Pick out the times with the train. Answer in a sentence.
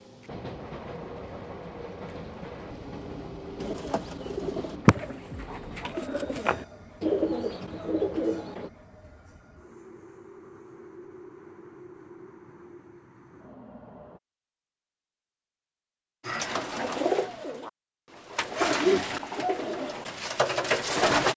You can hear the train from 0.0 to 14.2 s.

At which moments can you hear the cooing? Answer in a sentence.
The cooing can be heard from 3.5 to 8.7 s and from 16.2 to 21.3 s.